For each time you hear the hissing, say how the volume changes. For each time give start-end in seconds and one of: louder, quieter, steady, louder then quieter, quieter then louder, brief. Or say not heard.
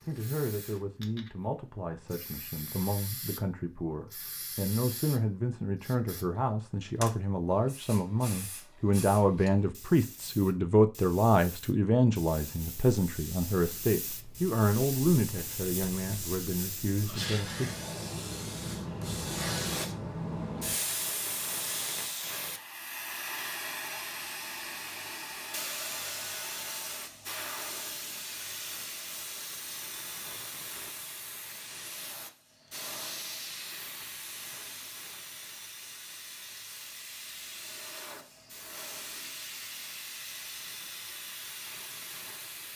0.0-42.7 louder then quieter.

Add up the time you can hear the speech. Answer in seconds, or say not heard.
18 s.